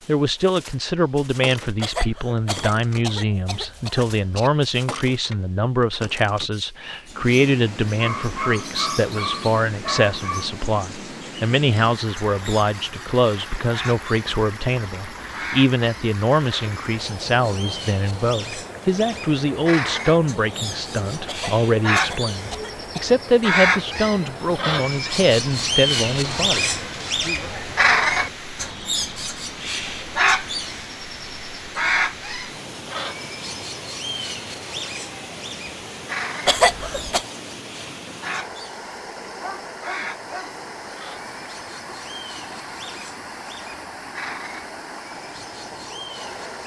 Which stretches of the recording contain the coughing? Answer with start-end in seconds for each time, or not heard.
1.8-4.5, 21.2-23.1, 36.5-37.2.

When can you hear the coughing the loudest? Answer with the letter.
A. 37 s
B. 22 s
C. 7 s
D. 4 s
A.